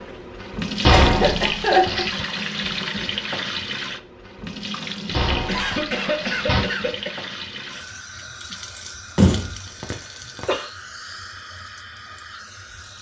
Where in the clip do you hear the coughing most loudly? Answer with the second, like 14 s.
2 s.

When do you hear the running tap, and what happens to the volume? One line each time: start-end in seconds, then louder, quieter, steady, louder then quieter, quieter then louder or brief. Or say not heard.
0.0-12.9 quieter.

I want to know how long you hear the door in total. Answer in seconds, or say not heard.
4 s.